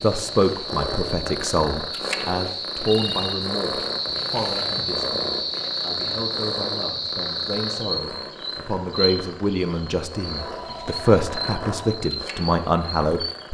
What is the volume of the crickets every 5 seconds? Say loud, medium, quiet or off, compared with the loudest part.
loud, loud, medium.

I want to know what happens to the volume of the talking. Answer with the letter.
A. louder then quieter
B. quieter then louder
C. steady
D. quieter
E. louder
B.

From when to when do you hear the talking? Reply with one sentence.
The talking can be heard from 0.0 to 13.4 s.